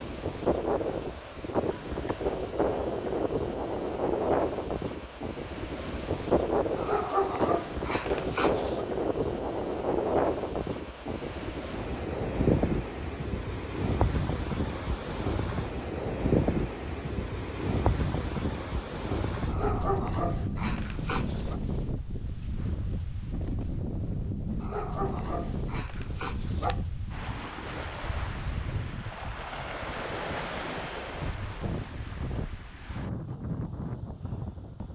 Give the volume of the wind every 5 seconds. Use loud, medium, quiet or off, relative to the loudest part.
loud, loud, loud, loud, medium, medium, medium.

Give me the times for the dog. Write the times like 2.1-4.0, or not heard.
6.8-8.8, 19.4-21.6, 24.6-26.8.